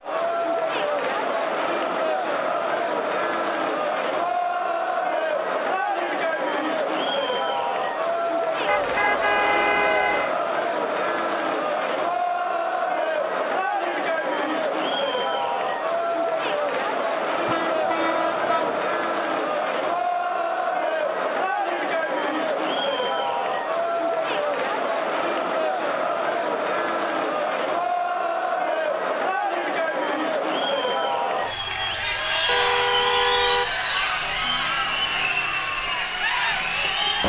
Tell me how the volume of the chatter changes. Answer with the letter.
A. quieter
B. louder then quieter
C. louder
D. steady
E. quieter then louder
D.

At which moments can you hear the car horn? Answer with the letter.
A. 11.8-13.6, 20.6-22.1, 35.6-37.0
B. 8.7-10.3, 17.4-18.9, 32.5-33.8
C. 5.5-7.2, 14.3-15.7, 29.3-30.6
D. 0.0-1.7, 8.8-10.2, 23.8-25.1
B.